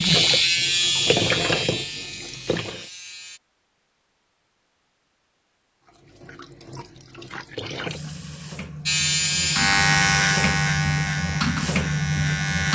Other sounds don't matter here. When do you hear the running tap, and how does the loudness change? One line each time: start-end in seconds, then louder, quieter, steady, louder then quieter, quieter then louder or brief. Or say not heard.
0.0-2.9 brief
5.8-12.7 louder.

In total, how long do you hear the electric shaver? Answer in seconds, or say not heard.
7 s.